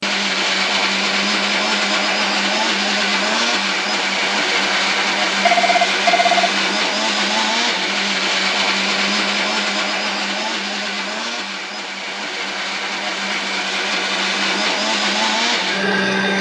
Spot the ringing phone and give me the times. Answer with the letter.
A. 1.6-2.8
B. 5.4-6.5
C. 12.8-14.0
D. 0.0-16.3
B.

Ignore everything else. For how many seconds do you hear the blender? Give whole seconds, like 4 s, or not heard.
16 s.